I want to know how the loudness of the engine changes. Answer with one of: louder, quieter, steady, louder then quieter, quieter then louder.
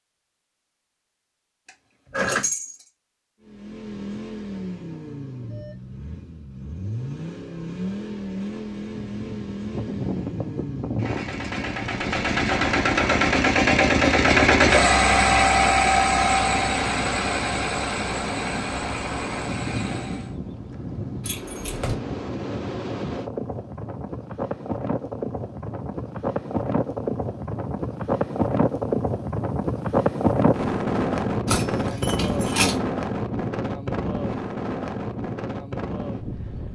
louder then quieter.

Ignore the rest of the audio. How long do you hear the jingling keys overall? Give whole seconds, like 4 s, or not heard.
3 s.